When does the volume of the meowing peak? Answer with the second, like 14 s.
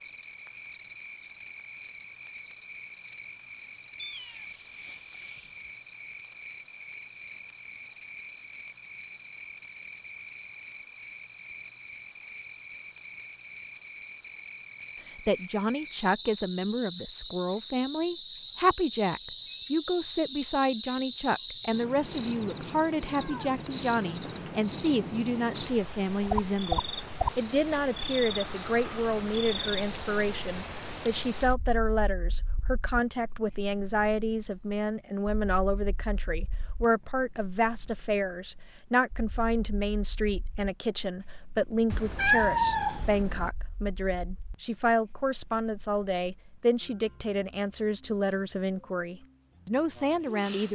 42 s.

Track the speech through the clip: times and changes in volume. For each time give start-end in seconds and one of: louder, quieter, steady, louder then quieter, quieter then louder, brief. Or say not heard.
15.2-50.7 steady.